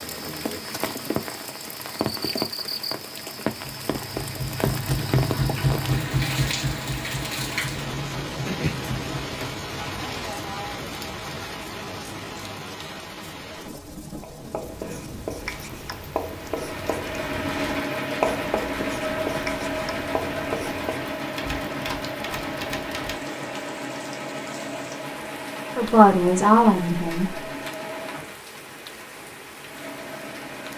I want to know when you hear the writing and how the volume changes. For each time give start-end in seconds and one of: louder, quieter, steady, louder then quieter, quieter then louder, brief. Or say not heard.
14.2-21.1 louder then quieter.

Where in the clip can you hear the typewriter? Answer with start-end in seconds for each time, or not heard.
21.3-23.2.